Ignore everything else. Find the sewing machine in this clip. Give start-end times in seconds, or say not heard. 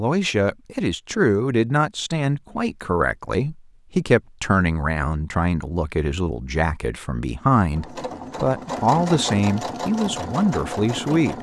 7.7-11.3.